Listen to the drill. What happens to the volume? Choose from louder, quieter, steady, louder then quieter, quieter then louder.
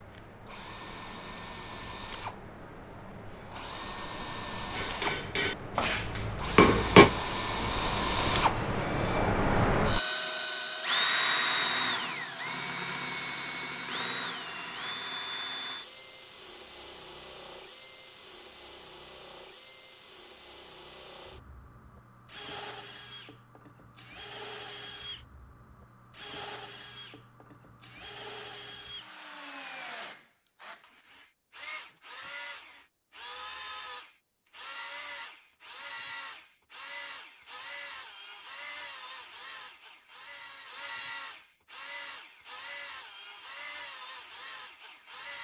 quieter.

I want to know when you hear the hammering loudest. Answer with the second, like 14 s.
7 s.